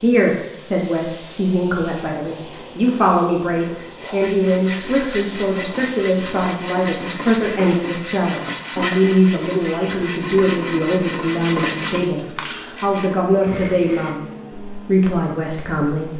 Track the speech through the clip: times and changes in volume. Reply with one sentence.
You can hear the speech from 0.0 to 16.1 s, at a steady volume.